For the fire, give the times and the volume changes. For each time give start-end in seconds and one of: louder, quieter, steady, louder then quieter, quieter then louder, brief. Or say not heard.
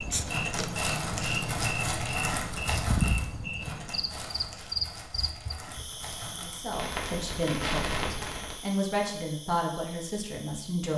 0.1-8.6 quieter then louder.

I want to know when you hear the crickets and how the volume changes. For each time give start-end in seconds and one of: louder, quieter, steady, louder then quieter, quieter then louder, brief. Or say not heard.
0.0-10.9 quieter.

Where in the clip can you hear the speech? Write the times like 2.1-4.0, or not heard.
6.4-10.9.